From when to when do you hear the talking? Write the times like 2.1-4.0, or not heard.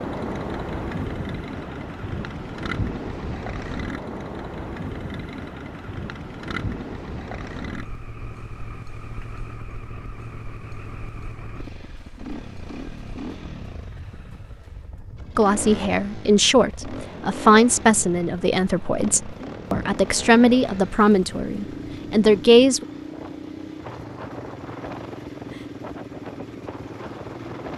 15.3-22.9.